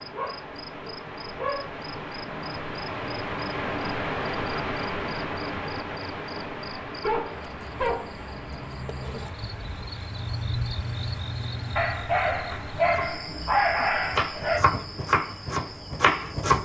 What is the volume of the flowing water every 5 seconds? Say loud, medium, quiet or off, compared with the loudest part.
loud, loud, quiet, quiet.